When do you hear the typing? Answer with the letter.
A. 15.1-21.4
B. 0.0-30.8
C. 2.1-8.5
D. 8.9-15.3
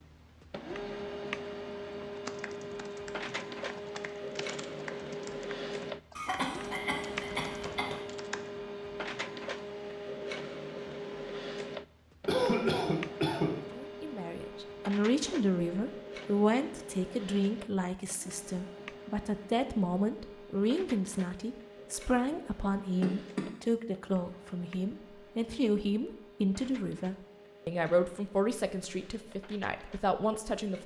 C.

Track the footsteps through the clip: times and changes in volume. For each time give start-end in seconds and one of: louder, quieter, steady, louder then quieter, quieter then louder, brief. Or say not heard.
not heard.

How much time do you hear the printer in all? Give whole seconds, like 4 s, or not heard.
31 s.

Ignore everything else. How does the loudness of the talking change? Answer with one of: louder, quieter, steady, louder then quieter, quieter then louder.
steady.